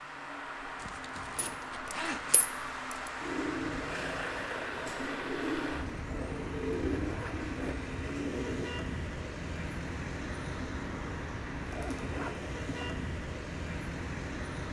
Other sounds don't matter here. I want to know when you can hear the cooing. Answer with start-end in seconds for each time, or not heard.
3.2-8.7.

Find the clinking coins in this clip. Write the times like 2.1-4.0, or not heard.
1.4-3.0.